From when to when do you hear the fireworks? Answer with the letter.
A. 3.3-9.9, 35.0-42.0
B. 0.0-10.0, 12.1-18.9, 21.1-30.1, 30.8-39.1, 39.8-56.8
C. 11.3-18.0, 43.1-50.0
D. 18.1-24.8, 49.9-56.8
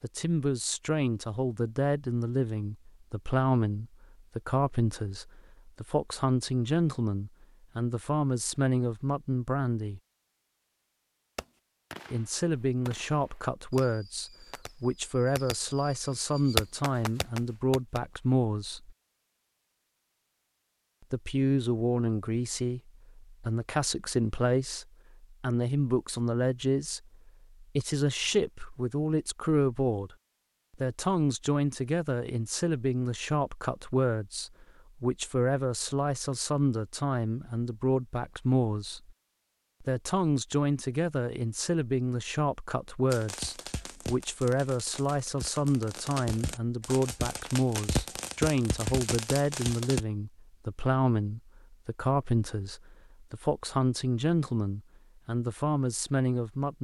C.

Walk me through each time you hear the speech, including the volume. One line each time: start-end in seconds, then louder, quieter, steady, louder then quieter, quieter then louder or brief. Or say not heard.
0.0-10.0 steady
12.1-18.9 steady
21.1-30.1 steady
30.8-39.1 steady
39.8-56.8 steady.